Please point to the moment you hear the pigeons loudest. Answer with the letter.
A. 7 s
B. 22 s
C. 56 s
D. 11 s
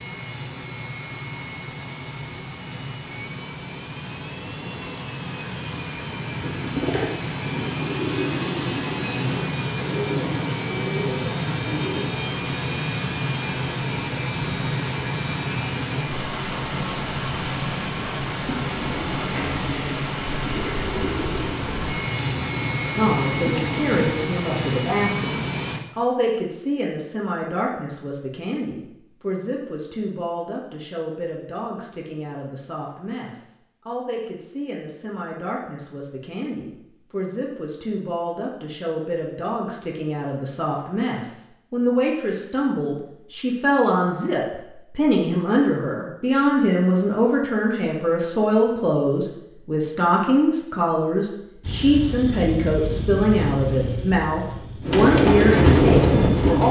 C.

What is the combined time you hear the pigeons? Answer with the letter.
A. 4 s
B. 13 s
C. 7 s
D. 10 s
B.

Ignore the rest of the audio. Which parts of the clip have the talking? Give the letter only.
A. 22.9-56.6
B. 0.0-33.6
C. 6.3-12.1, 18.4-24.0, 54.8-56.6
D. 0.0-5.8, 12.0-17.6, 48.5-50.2
A.